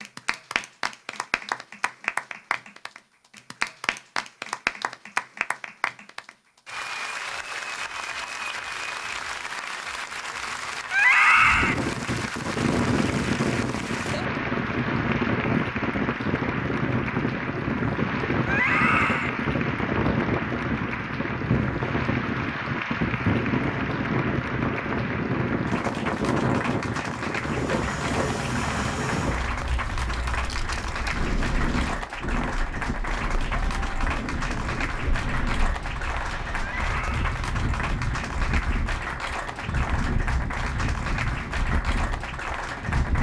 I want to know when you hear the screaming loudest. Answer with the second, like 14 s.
11 s.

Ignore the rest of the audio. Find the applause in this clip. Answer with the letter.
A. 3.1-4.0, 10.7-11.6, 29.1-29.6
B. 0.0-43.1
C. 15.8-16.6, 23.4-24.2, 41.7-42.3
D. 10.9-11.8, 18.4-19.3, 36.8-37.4
B.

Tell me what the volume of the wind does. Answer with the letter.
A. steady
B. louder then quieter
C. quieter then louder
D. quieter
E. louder
D.